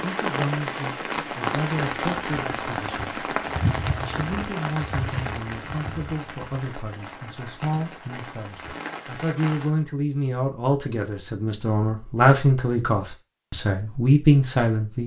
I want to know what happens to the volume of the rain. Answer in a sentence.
The volume of the rain goes down.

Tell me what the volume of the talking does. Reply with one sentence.
The loudness of the talking goes up.